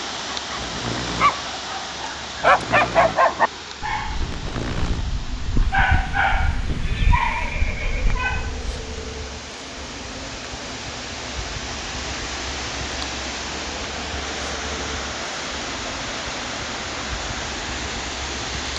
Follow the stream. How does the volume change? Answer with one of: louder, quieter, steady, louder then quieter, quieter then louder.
quieter then louder.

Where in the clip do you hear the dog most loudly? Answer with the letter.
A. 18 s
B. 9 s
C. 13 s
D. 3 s
D.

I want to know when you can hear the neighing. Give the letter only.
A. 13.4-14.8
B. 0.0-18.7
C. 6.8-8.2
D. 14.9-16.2
C.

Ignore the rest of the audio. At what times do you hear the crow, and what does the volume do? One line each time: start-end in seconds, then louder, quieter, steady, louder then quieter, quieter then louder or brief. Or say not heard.
not heard.